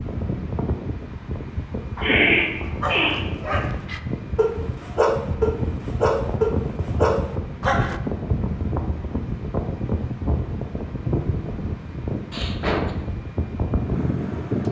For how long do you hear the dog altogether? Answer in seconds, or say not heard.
6 s.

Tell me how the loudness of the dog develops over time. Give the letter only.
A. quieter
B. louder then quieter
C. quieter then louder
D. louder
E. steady
D.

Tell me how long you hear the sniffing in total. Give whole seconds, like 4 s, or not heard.
2 s.